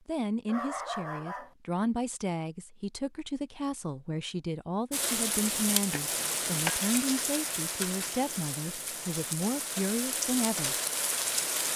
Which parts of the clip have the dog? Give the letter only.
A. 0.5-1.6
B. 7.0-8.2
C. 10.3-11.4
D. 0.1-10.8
A.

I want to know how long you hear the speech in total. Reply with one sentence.
You can hear the speech for 11 seconds altogether.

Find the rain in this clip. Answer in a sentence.
The rain can be heard from 4.9 to 11.7 s.